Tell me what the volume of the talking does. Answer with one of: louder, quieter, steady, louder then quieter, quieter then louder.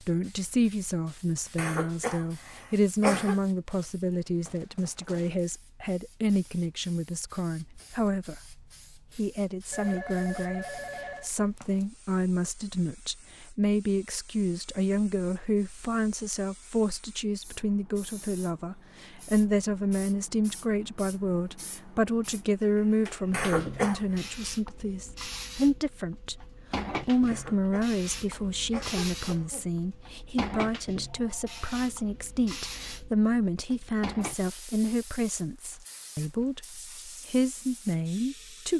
steady.